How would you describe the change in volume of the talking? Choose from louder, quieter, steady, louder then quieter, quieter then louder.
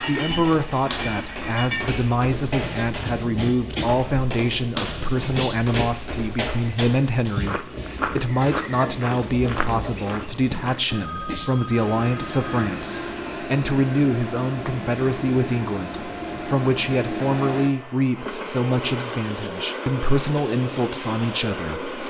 steady.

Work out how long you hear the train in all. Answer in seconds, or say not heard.
22 s.